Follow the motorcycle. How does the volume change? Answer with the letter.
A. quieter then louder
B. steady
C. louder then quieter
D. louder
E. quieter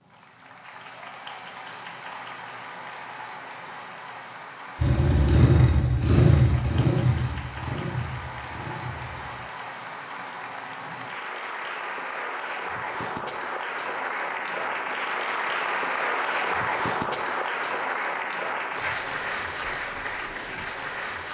E.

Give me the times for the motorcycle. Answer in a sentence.
The motorcycle can be heard from 4.8 to 9.4 s.